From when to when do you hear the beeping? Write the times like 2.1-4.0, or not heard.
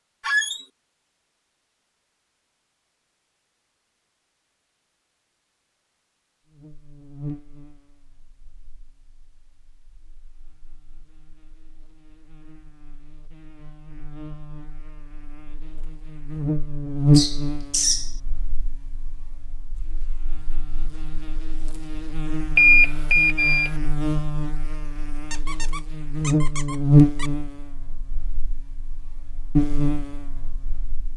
22.6-23.8.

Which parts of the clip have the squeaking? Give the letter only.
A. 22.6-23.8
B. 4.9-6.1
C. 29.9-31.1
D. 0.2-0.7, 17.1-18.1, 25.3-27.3
D.